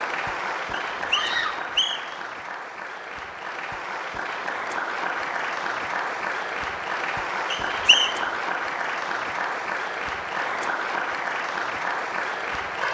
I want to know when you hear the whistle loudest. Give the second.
8 s.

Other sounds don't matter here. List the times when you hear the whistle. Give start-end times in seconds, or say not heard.
0.9-2.2, 7.5-8.2.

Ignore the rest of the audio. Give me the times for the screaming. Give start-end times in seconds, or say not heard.
1.1-1.7.